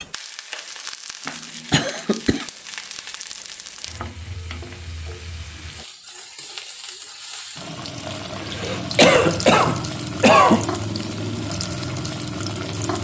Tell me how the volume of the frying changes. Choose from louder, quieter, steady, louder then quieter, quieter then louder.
louder.